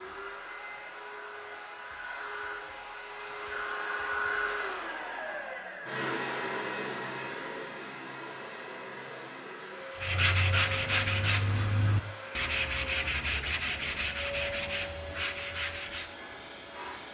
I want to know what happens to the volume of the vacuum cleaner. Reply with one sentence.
The volume of the vacuum cleaner goes up, then down.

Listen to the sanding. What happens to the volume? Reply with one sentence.
The loudness of the sanding goes down.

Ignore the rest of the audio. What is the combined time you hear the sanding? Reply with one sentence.
You can hear the sanding for 6 seconds altogether.